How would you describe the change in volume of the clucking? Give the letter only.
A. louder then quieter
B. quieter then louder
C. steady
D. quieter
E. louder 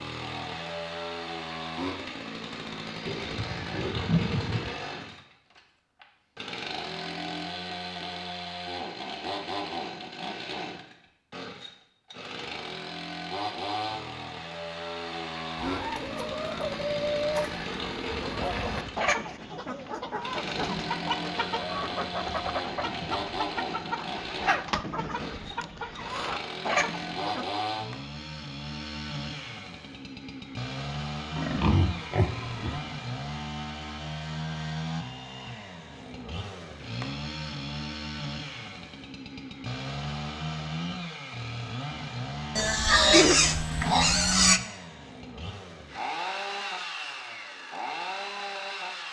C.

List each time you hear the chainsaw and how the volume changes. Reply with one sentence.
You can hear the chainsaw from 0.0 to 49.0 s, at a steady volume.